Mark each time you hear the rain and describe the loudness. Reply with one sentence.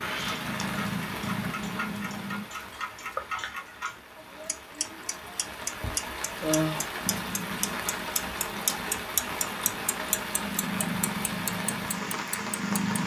You can hear the rain from 0.0 to 13.0 s, getting quieter then louder.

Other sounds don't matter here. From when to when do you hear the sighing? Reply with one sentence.
The sighing can be heard from 4.2 to 6.8 s.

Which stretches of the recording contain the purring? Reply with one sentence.
You can hear the purring from 0.0 to 2.5 s and from 7.0 to 13.0 s.